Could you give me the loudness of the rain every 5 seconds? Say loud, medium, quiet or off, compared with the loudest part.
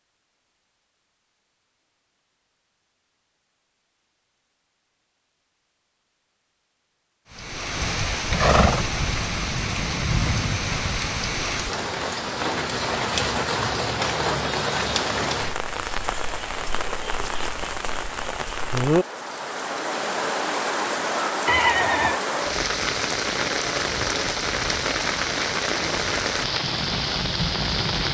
off, loud, loud, loud, loud, loud.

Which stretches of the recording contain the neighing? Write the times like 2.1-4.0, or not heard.
8.3-8.9, 21.4-22.2.